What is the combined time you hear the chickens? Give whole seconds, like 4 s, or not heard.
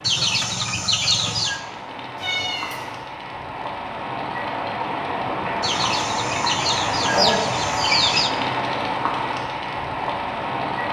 4 s.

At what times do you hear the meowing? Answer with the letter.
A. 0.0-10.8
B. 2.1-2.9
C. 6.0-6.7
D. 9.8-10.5
B.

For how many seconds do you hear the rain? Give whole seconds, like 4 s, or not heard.
11 s.